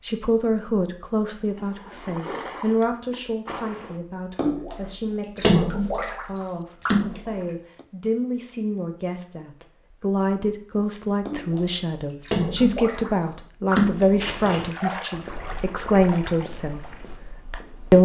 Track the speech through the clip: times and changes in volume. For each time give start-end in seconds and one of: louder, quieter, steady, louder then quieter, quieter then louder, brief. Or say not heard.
0.0-17.9 quieter then louder.